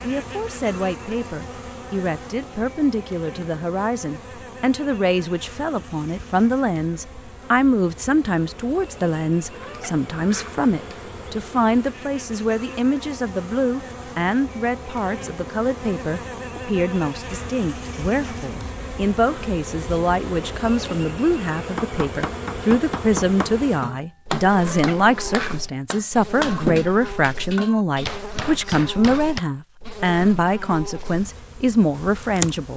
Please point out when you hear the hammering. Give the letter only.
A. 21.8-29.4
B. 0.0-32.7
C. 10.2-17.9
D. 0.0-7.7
A.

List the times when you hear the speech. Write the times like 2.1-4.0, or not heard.
0.0-32.7.